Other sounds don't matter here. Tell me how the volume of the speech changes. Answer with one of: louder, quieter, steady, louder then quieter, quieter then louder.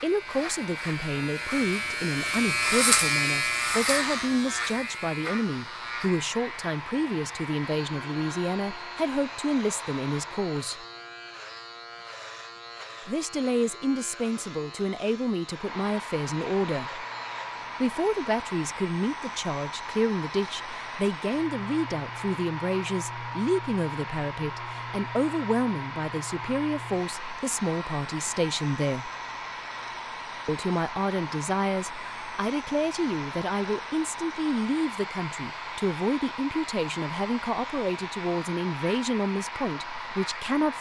steady.